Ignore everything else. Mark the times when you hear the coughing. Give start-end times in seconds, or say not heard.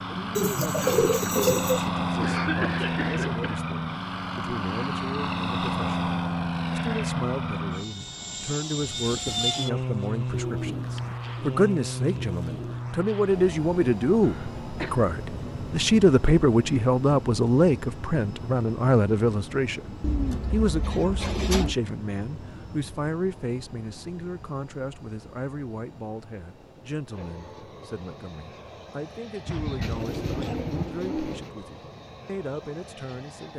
2.2-3.6, 14.2-15.1, 29.4-30.9.